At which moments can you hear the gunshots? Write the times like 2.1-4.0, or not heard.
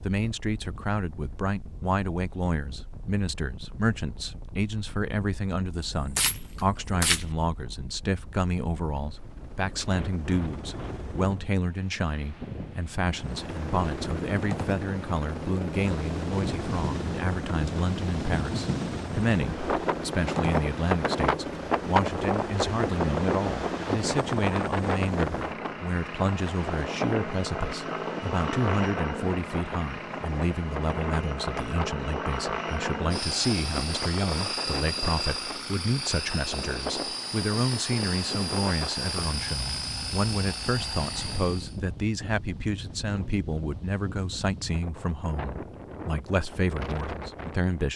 6.0-7.2.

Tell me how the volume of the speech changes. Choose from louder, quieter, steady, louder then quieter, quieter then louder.
steady.